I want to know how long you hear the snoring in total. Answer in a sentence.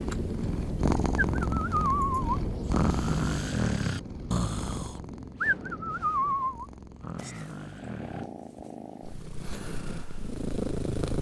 The snoring can be heard for 7 seconds in total.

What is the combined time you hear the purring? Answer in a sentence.
The purring can be heard for 11 seconds in total.